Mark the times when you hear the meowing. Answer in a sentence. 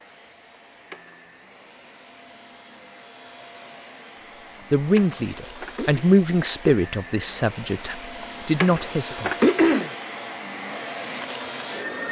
You can't hear the meowing here.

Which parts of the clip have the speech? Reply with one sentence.
The speech can be heard from 4.7 to 9.3 s.